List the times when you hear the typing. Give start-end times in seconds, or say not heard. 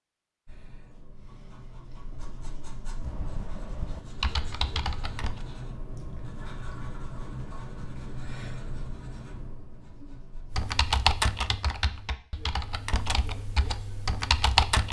3.0-5.5, 10.5-14.8.